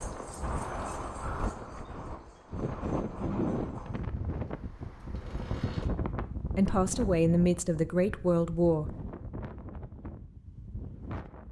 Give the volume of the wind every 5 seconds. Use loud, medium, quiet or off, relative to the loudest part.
loud, loud, medium.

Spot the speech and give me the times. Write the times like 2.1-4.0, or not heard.
6.5-8.9.